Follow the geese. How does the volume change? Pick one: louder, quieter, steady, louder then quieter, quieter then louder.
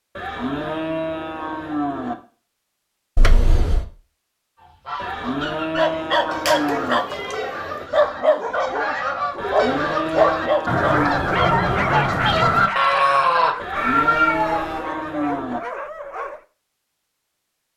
louder.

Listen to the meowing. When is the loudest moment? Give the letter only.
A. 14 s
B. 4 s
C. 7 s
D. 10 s
A.